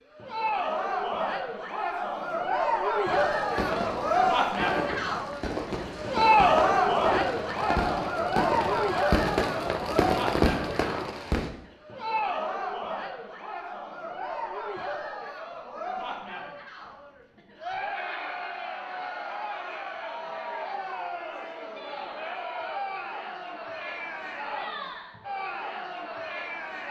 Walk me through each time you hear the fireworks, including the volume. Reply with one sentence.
You can hear the fireworks from 3.0 to 11.6 s, getting louder.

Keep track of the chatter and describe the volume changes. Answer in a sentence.
The volume of the chatter goes down.